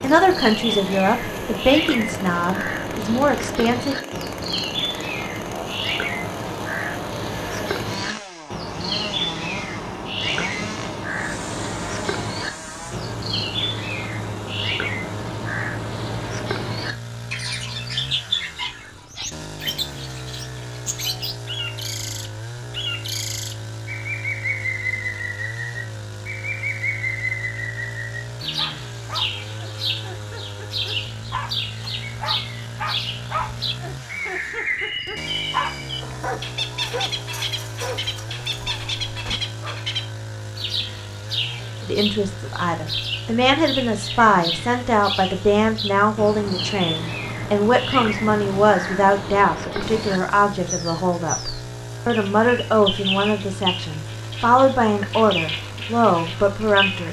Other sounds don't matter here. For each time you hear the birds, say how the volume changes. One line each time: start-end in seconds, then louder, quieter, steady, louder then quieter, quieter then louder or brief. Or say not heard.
0.0-57.0 steady.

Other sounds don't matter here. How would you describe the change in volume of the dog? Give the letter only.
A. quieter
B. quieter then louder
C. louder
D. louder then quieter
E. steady
D.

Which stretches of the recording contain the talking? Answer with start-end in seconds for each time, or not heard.
0.0-4.0, 41.8-57.0.